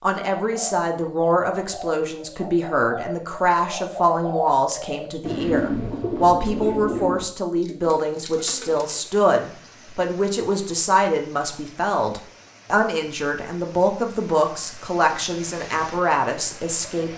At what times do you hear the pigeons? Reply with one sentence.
The pigeons can be heard from 0.3 to 9.1 s.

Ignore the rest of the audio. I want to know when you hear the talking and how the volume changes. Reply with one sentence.
The talking can be heard from 0.0 to 17.1 s, at a steady volume.